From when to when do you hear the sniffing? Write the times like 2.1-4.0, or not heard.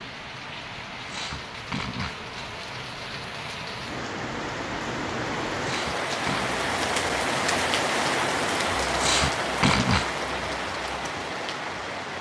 1.1-2.2, 5.6-6.6, 8.9-10.1.